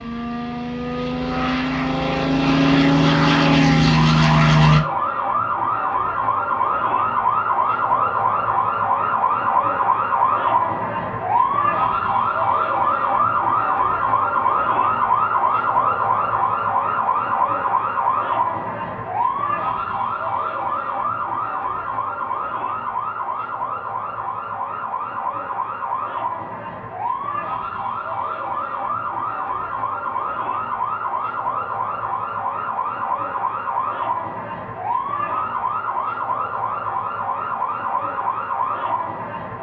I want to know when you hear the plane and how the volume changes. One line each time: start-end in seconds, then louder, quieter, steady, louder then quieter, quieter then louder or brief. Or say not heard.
0.0-4.8 louder.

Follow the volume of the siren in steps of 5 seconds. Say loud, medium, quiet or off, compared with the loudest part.
loud, loud, loud, loud, medium, medium, medium, medium.